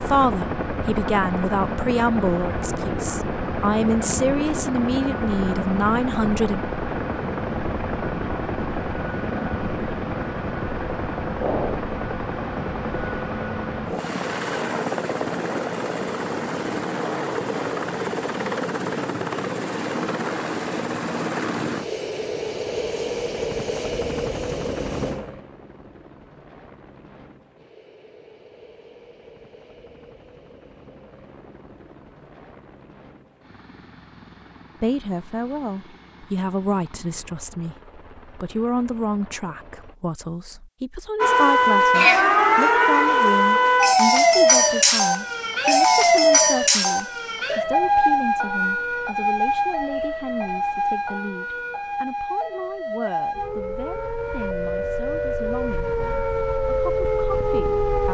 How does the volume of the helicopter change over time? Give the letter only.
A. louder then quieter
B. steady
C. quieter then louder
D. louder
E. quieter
E.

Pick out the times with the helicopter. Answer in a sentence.
The helicopter can be heard from 0.0 to 40.0 s.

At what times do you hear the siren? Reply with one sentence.
The siren can be heard from 41.2 to 58.0 s.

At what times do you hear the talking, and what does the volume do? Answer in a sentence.
You can hear the talking from 0.1 to 6.6 s, at a steady volume; and from 34.8 to 58.0 s, getting quieter.